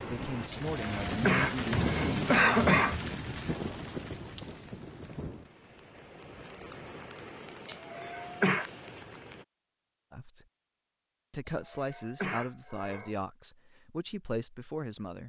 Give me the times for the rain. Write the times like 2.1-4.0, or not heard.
0.0-9.4.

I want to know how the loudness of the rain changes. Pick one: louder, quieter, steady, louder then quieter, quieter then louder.
quieter.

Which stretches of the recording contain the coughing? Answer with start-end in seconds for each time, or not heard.
0.5-3.0, 7.7-8.7, 11.4-13.2.